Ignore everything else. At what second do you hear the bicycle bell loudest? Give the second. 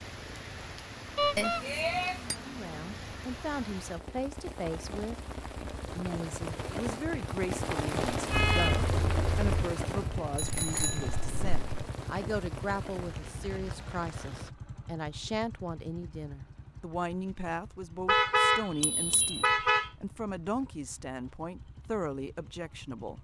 2 s.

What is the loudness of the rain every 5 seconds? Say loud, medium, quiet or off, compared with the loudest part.
medium, loud, medium, off, off.